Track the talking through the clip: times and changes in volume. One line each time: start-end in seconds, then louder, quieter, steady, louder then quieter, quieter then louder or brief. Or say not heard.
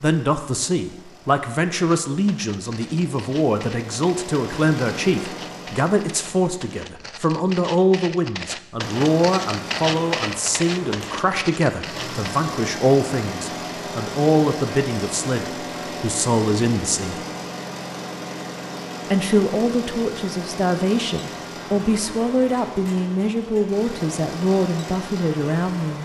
0.0-17.2 steady
19.1-26.0 steady.